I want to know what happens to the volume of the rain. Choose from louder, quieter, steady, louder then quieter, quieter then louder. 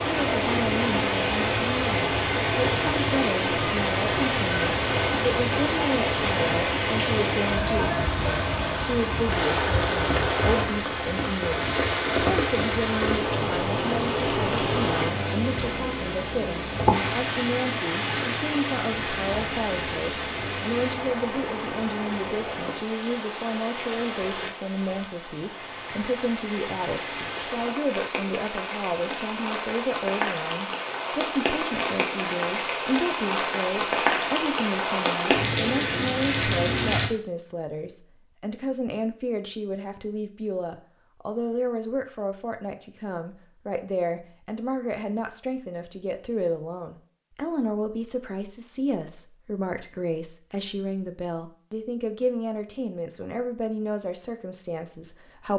quieter then louder.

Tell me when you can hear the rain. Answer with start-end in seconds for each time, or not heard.
0.0-37.1.